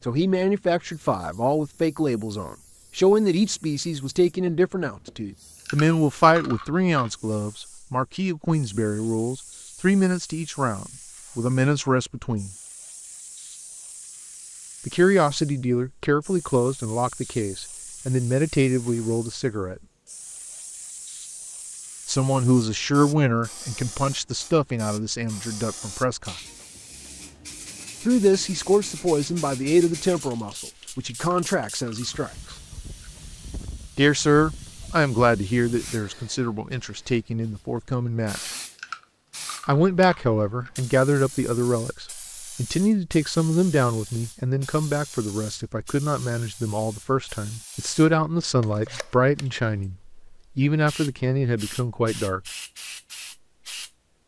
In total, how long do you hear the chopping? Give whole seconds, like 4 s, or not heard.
not heard.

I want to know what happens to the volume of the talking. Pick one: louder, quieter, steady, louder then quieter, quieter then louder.
steady.